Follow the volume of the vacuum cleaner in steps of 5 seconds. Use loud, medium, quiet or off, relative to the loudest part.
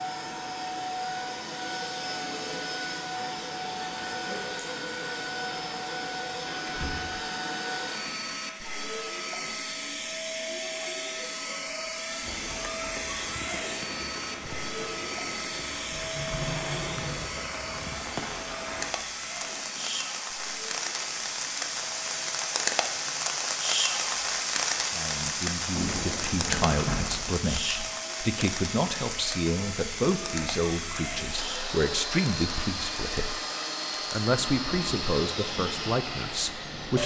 loud, loud, loud, loud, medium, medium, loud, loud.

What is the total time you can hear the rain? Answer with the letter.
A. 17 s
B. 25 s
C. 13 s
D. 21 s
B.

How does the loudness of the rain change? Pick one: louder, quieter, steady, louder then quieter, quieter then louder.
louder then quieter.